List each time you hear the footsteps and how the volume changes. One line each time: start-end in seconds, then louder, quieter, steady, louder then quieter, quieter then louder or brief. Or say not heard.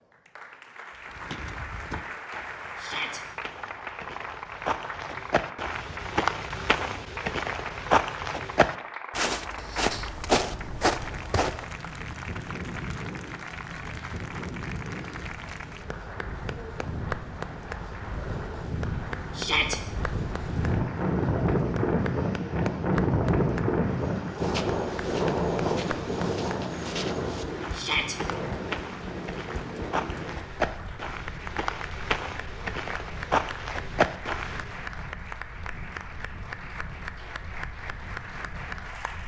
1.1-11.7 louder
24.2-34.8 louder.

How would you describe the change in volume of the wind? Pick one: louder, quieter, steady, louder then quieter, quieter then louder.
louder then quieter.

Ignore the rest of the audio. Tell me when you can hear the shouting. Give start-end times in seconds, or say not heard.
2.8-3.2, 19.4-19.8, 27.7-28.1.